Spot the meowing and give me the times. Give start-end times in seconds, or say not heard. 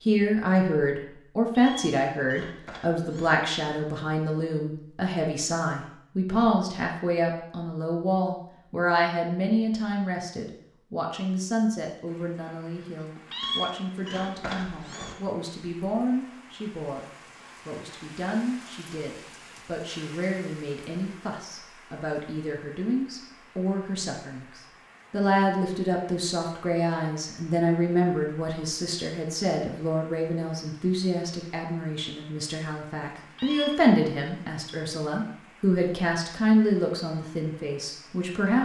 1.5-3.4, 13.2-15.2, 33.2-33.8.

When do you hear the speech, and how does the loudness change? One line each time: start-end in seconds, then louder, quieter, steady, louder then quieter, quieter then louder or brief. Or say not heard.
0.0-38.5 quieter then louder.